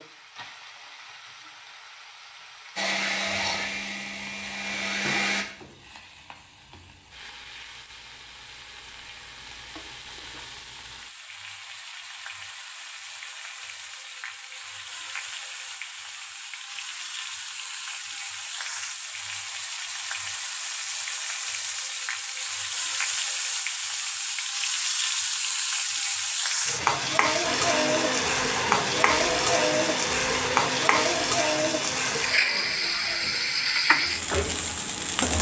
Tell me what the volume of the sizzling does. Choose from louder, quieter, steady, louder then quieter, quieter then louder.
louder.